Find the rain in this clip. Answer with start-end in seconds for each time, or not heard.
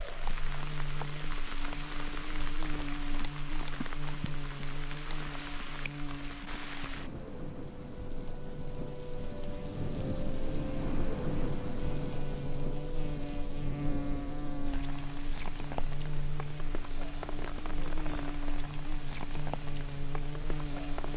0.0-21.1.